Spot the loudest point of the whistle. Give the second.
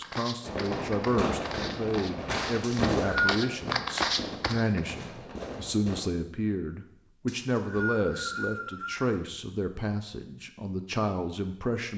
3 s.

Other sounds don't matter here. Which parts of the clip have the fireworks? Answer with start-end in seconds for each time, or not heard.
0.4-6.0.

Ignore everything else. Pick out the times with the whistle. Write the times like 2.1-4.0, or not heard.
2.6-3.4, 7.2-9.1.